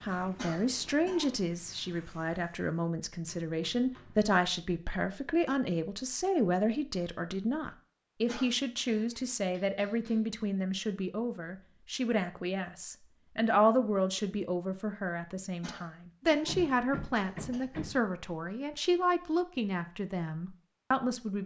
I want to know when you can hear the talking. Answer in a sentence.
You can hear the talking from 0.0 to 21.4 s.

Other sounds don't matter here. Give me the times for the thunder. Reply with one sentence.
You can't hear the thunder here.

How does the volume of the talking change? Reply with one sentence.
The volume of the talking stays about the same.